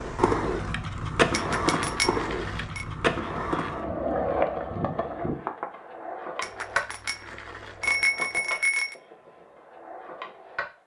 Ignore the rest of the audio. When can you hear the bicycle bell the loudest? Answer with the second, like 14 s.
8 s.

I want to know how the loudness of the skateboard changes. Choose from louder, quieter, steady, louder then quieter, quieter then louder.
quieter.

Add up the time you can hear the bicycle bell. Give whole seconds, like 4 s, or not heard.
4 s.